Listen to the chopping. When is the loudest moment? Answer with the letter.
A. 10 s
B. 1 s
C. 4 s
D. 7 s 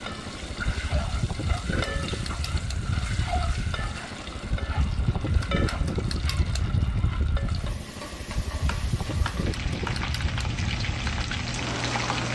A.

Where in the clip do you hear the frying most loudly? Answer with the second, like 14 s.
12 s.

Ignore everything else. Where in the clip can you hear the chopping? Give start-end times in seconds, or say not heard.
8.7-10.1.